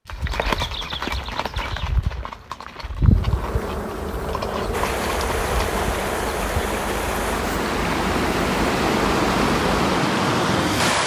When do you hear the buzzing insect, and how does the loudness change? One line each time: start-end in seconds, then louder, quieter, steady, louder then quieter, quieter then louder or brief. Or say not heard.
3.0-11.0 steady.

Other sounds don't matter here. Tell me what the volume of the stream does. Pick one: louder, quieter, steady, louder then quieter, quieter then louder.
louder.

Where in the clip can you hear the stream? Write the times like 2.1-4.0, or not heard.
4.7-11.0.